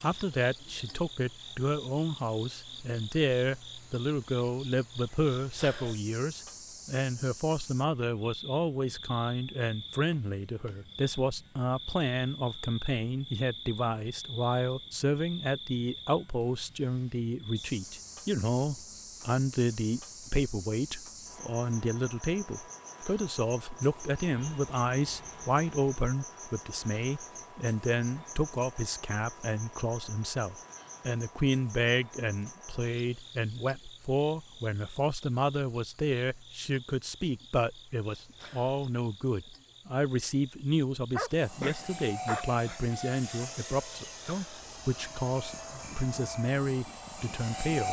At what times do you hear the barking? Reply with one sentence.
You can hear the barking from 41.1 to 42.8 s.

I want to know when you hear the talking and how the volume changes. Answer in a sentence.
You can hear the talking from 0.0 to 47.8 s, at a steady volume.